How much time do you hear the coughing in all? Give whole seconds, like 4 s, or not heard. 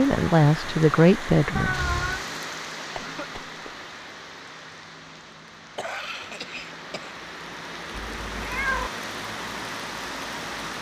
2 s.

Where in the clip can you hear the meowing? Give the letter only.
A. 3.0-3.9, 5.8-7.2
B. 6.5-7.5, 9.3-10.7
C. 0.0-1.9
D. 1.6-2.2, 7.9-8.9
D.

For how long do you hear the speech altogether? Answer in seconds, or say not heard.
2 s.